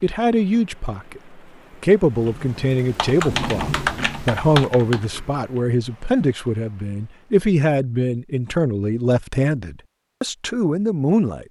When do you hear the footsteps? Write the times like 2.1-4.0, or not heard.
not heard.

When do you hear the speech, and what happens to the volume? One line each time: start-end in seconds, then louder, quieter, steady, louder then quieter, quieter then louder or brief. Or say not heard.
0.0-11.4 steady.